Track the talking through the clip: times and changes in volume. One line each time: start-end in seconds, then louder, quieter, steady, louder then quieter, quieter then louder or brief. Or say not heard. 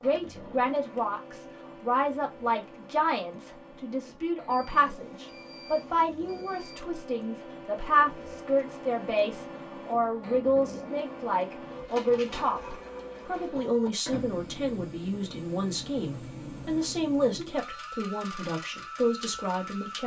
0.0-20.0 steady.